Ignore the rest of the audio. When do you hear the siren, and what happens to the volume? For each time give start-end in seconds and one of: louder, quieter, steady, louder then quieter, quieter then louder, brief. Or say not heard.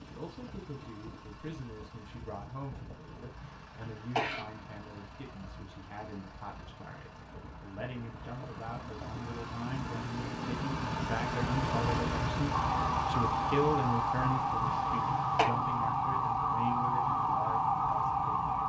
12.5-18.6 steady.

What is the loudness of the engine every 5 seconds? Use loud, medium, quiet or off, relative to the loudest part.
quiet, medium, loud, quiet.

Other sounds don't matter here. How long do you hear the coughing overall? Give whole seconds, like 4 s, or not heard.
2 s.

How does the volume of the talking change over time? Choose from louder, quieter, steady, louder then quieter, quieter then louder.
louder then quieter.